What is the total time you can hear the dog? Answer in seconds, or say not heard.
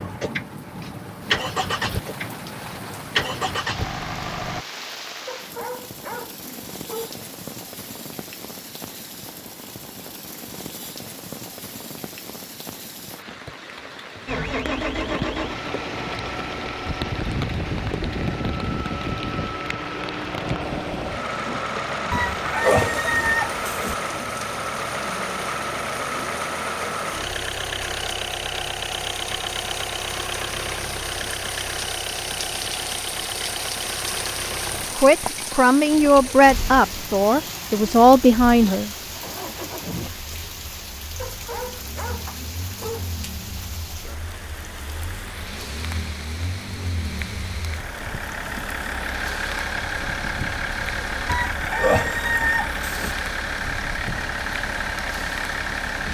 4 s.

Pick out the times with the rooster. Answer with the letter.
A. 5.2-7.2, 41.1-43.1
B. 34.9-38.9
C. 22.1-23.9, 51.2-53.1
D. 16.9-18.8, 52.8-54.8
C.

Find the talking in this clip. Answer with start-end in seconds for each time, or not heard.
34.9-38.9.